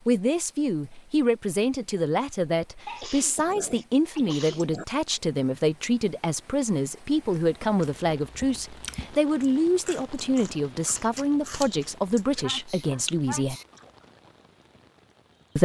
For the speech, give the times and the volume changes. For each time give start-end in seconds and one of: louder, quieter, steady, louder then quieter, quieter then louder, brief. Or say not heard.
0.1-13.6 steady.